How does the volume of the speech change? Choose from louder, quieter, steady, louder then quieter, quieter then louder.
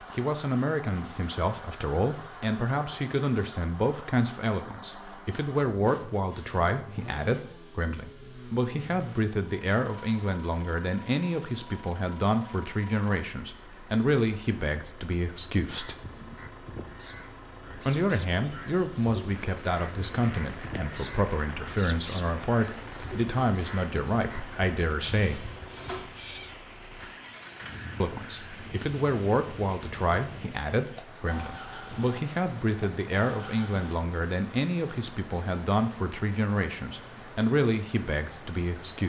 steady.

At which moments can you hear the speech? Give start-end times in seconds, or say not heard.
0.1-15.9, 17.9-25.5, 28.0-39.0.